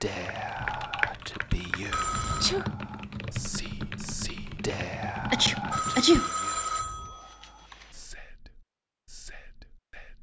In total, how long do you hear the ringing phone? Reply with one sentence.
The ringing phone can be heard for 3 seconds in total.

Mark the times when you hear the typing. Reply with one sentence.
You can hear the typing from 0.0 to 6.2 s.